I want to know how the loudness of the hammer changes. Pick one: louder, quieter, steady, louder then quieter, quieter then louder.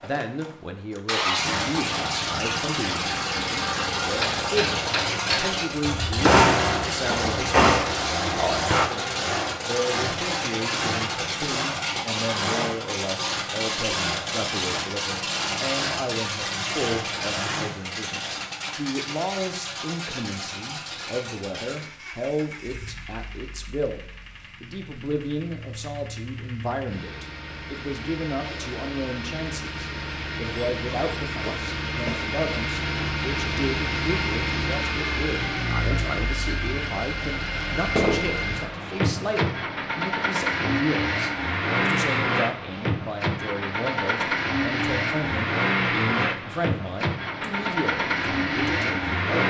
louder then quieter.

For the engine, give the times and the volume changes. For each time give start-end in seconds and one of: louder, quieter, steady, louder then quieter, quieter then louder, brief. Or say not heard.
0.0-49.4 quieter then louder.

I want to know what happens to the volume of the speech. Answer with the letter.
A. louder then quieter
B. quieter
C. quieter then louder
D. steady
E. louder
D.